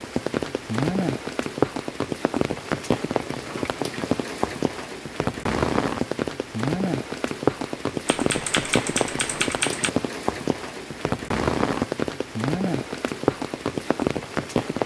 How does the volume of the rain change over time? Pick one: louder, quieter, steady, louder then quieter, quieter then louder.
steady.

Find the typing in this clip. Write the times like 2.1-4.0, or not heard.
8.1-9.9.